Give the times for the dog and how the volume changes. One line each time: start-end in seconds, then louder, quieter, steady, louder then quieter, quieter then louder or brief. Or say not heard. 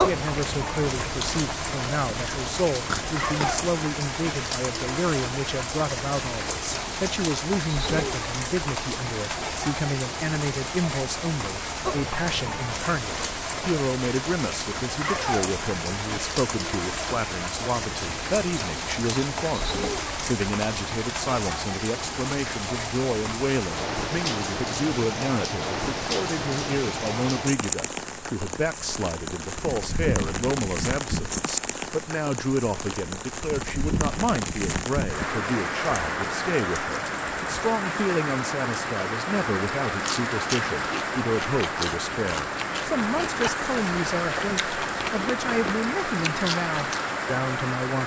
not heard.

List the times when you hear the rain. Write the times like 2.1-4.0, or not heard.
0.0-48.0.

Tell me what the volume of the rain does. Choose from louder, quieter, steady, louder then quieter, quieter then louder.
steady.